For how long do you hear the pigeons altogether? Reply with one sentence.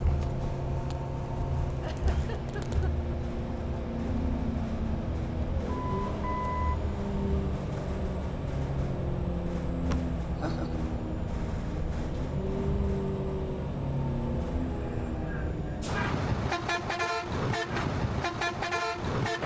You can't hear the pigeons here.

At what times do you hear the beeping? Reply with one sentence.
The beeping can be heard from 5.7 to 6.8 s.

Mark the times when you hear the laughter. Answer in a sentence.
The laughter can be heard from 1.7 to 3.1 s and from 9.9 to 10.8 s.